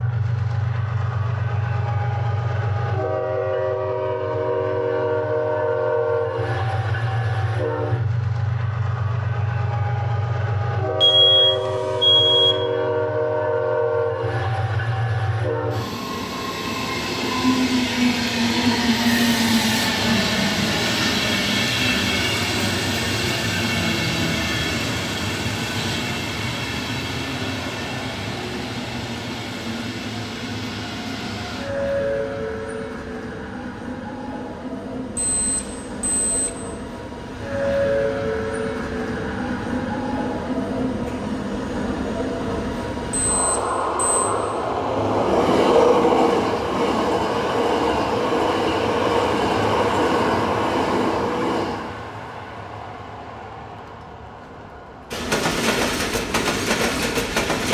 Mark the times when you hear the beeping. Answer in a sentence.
You can hear the beeping from 11.0 to 12.6 s, from 35.1 to 36.5 s and from 43.1 to 44.4 s.